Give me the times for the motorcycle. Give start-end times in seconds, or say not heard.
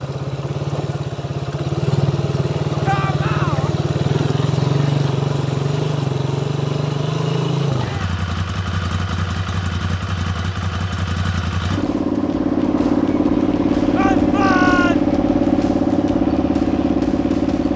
0.0-17.7.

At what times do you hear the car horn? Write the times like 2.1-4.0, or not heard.
not heard.